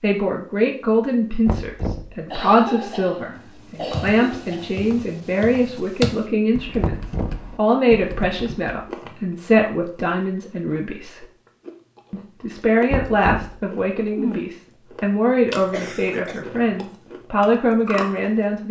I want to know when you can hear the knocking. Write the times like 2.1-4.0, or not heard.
1.4-2.2, 6.8-7.5, 12.9-13.7.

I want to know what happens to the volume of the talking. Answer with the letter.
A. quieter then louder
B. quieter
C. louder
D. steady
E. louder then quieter
D.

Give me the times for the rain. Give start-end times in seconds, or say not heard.
not heard.